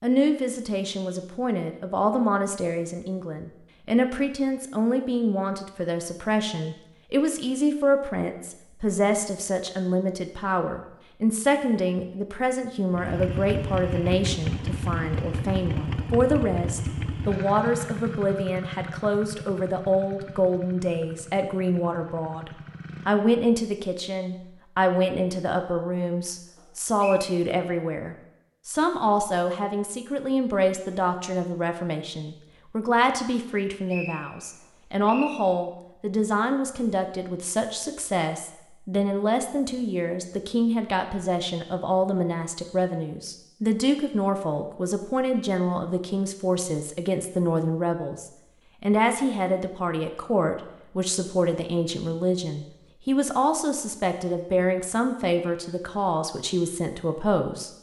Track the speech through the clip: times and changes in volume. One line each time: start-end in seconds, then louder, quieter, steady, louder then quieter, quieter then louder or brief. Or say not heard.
0.0-57.7 steady.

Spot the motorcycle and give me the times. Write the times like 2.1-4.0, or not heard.
12.9-23.3.